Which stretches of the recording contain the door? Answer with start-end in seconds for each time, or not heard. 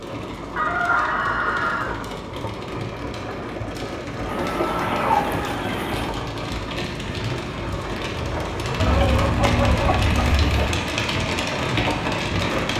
not heard.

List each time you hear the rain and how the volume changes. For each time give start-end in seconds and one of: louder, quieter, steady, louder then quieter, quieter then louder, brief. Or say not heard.
0.0-12.7 louder.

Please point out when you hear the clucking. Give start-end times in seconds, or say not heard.
0.6-1.9, 4.2-6.1, 8.8-10.7.